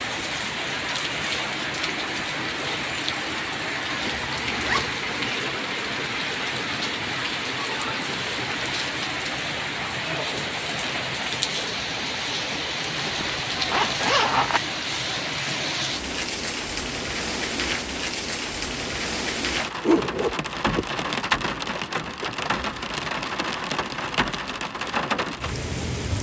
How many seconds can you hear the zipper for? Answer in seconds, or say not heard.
4 s.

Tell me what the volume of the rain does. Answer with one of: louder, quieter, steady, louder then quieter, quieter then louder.
steady.